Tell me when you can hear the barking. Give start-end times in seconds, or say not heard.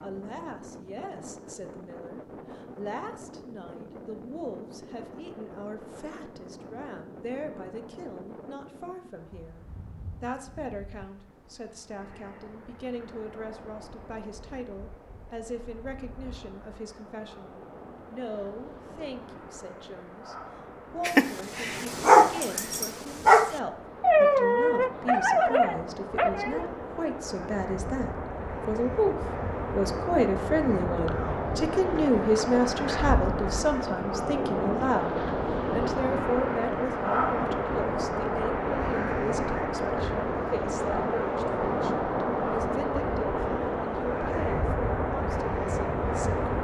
21.1-26.7.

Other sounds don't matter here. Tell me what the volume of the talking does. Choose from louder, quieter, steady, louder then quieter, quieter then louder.
louder then quieter.